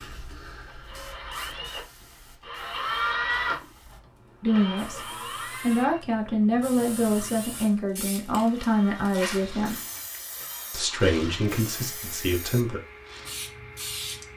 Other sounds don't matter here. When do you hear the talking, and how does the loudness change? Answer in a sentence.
The talking can be heard briefly from 4.4 to 5.0 s; from 5.6 to 9.8 s, at a steady volume; and briefly from 10.7 to 12.8 s.